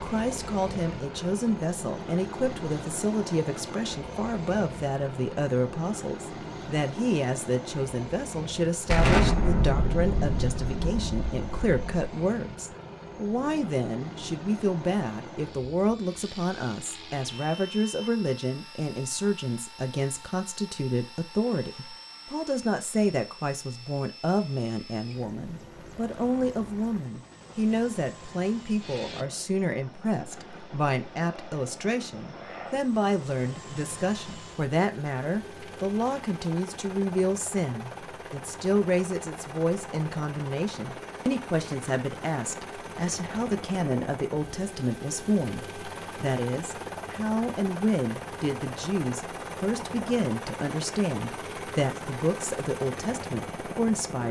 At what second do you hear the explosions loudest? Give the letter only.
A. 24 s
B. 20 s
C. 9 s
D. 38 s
C.